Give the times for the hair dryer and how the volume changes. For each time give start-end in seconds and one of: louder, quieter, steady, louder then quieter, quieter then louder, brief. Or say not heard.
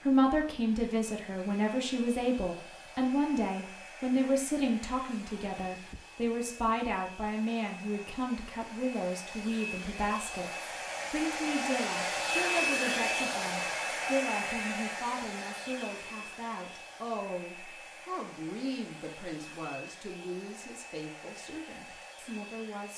0.0-22.9 louder then quieter.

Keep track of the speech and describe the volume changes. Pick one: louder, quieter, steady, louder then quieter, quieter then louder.
quieter.